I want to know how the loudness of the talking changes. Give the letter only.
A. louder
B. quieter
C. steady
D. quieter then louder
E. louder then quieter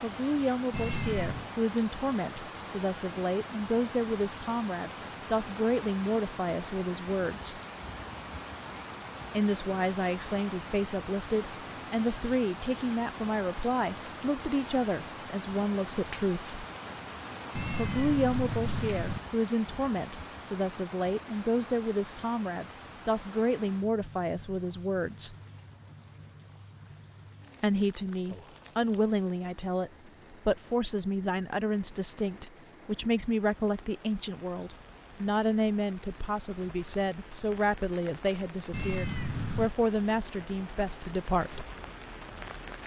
C.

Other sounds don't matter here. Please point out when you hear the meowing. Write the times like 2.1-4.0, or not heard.
0.7-1.5, 17.6-19.2, 38.7-39.7.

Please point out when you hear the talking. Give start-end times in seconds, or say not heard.
0.0-7.6, 9.3-16.6, 17.8-25.4, 27.6-41.6.